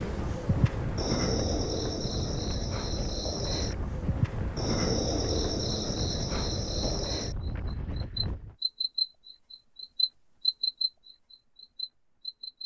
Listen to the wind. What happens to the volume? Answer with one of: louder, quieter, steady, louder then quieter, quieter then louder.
steady.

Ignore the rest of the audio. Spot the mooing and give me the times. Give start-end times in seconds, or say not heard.
not heard.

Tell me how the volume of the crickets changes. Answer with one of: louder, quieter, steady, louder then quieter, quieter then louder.
steady.